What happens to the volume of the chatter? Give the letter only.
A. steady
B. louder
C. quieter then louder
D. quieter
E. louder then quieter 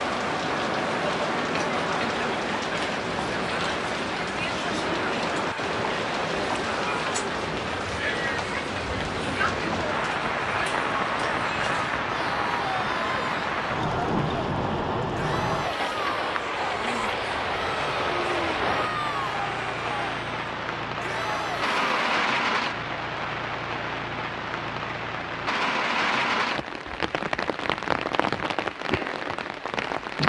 A.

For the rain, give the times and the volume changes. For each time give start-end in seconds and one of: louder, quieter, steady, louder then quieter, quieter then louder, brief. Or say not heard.
0.0-30.2 steady.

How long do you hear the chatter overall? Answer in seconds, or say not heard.
22 s.